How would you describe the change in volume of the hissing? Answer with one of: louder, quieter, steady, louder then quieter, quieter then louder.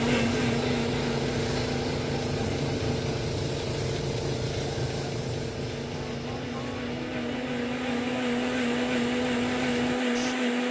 quieter.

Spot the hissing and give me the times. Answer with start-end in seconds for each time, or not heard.
0.0-10.4.